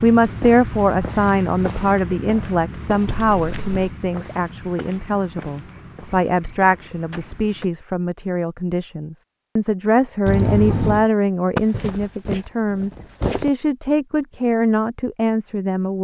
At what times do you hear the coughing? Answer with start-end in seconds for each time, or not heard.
3.0-3.9, 10.2-11.1.